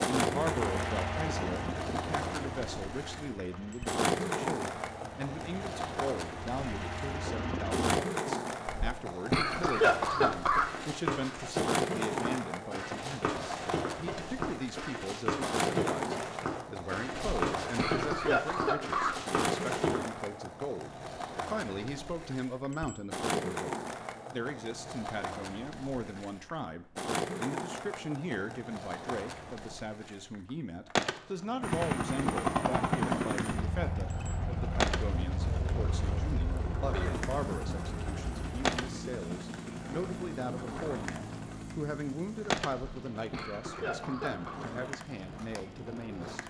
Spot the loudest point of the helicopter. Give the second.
33 s.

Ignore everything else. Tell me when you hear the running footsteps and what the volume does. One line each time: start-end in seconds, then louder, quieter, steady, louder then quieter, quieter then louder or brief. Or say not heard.
9.7-20.0 steady.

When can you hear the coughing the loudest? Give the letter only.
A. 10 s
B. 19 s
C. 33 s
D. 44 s
A.